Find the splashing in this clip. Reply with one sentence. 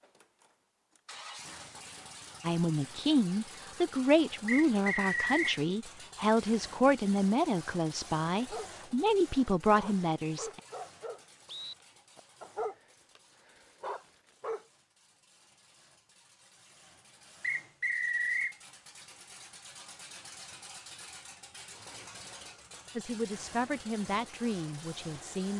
You can't hear the splashing here.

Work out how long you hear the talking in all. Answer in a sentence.
You can hear the talking for 11 seconds altogether.